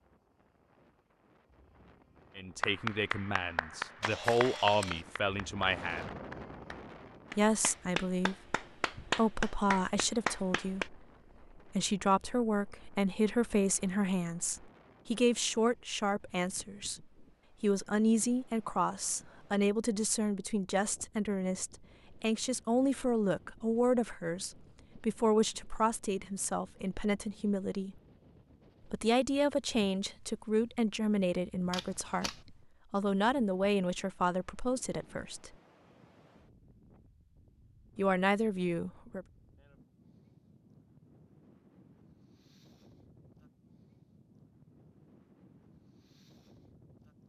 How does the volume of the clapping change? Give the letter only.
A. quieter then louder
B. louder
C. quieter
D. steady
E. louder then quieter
A.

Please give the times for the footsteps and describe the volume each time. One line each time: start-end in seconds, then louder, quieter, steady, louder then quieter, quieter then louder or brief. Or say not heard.
not heard.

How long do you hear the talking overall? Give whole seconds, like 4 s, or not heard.
32 s.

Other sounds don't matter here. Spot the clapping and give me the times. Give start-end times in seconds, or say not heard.
2.6-10.9.